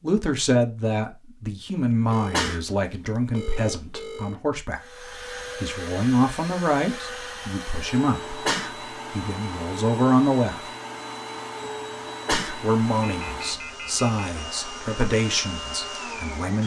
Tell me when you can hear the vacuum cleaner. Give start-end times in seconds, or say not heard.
4.8-16.6.